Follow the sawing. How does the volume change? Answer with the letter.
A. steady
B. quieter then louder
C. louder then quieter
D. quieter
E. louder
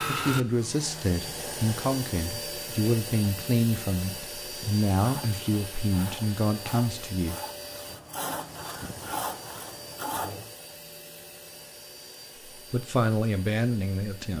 E.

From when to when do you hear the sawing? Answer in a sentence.
The sawing can be heard from 5.0 to 10.5 s.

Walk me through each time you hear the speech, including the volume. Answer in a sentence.
The speech can be heard from 0.0 to 7.3 s, at a steady volume; and briefly from 12.6 to 14.3 s.